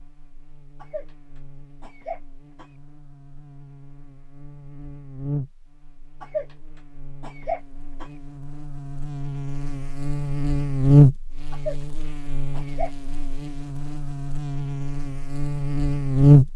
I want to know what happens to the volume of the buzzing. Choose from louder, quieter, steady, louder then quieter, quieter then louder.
louder then quieter.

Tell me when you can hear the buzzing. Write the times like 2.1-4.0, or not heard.
0.0-16.5.